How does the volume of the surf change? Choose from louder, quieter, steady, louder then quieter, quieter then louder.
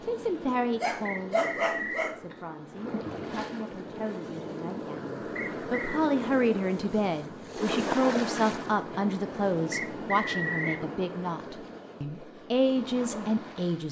louder then quieter.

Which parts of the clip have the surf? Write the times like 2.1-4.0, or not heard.
0.0-13.8.